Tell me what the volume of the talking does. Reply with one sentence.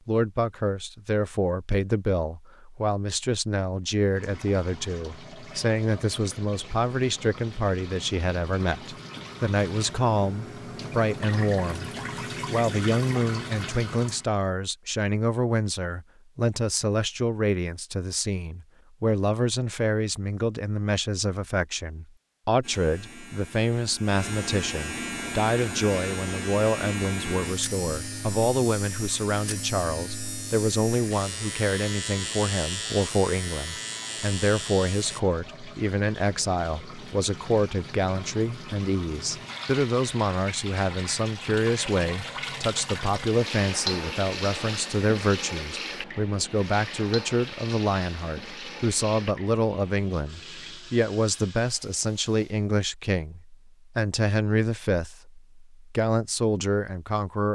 The loudness of the talking stays about the same.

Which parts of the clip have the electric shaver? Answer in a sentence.
You can hear the electric shaver from 22.6 to 35.2 s.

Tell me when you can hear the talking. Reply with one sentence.
The talking can be heard from 0.1 to 57.5 s.